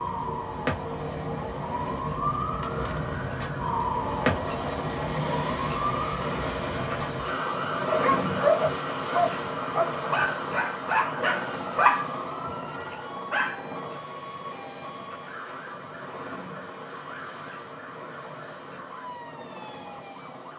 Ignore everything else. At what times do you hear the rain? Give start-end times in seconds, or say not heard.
not heard.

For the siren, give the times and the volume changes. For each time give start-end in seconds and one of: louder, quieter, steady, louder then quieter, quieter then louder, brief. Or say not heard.
0.0-20.5 quieter.